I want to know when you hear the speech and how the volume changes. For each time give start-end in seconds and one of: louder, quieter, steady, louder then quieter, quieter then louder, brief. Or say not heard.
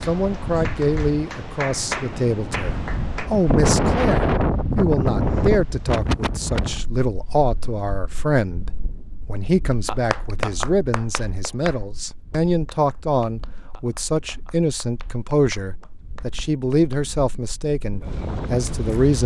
0.1-19.2 steady.